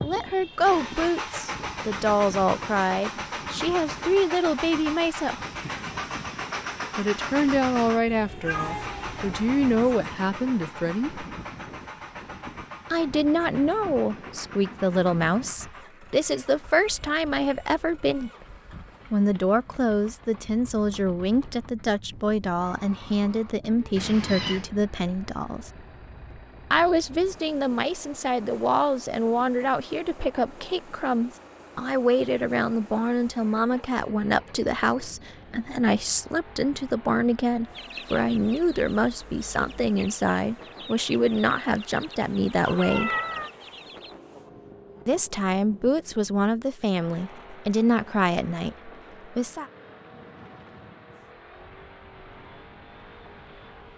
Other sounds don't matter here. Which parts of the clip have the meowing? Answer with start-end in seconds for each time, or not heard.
8.1-10.0, 23.9-24.7, 42.6-43.5.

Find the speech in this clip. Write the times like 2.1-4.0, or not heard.
0.0-5.5, 7.0-11.2, 12.9-18.3, 19.1-25.7, 26.7-43.1, 45.0-49.6.